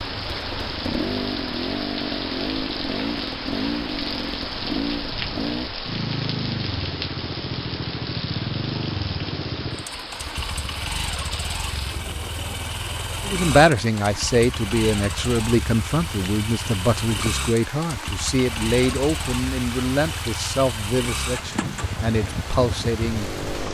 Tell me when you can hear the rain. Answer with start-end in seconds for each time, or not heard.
0.0-23.7.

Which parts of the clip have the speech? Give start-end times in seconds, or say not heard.
13.2-23.7.